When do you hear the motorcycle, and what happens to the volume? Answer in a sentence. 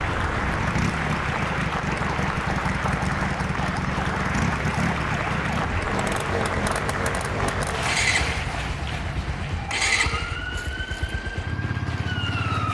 The motorcycle can be heard from 0.0 to 12.6 s, at a steady volume.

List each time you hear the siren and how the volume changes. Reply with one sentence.
The siren can be heard from 0.0 to 12.6 s, at a steady volume.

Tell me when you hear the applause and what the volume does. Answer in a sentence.
The applause can be heard from 0.0 to 12.6 s, getting quieter.